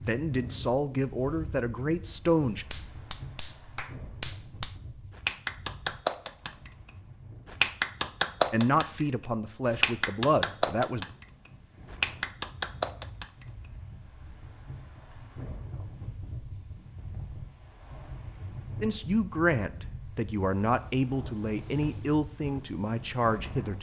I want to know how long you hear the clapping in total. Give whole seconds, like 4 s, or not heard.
11 s.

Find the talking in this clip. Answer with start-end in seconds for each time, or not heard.
0.1-2.6, 8.5-11.1, 18.8-23.7.